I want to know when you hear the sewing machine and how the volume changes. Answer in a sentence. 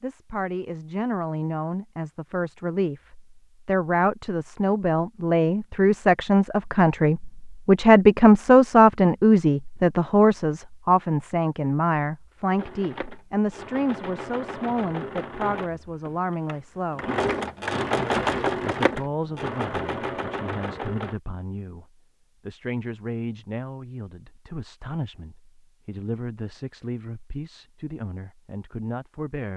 You can hear the sewing machine from 12.6 to 21.2 s, getting louder then quieter.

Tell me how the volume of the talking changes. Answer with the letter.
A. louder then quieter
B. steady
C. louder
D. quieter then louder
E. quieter
A.